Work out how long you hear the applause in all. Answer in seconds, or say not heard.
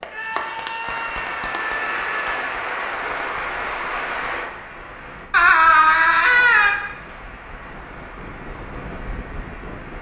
10 s.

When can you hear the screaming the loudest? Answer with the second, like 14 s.
6 s.